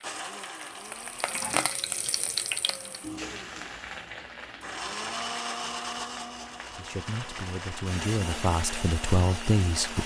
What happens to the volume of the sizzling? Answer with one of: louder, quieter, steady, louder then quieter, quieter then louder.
quieter.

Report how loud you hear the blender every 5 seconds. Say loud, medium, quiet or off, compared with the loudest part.
medium, loud.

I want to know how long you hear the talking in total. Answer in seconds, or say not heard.
3 s.